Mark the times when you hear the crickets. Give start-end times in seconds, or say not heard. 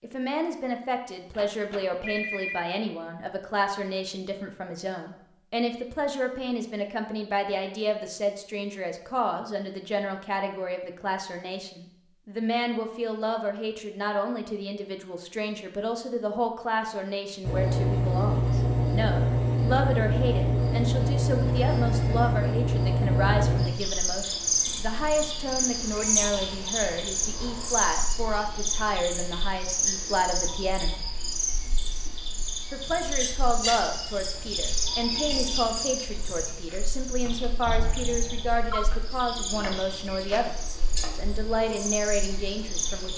17.4-43.1.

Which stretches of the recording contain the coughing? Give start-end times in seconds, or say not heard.
not heard.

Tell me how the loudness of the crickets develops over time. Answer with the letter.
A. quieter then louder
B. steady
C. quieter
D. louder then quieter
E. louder
C.